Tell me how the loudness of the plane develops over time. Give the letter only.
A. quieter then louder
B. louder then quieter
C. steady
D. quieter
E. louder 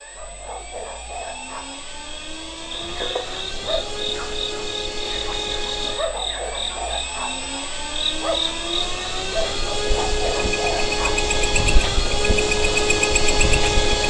E.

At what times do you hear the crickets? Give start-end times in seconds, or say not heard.
2.7-14.0.